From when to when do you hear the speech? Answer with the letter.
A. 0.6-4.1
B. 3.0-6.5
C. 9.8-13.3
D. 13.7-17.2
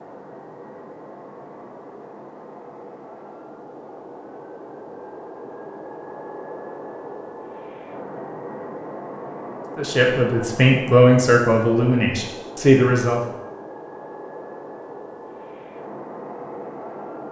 C.